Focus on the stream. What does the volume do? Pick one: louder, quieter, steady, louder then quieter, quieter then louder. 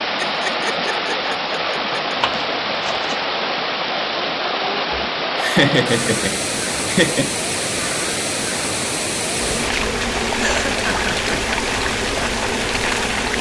steady.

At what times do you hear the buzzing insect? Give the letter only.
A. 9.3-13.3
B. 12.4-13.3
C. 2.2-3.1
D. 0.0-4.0
A.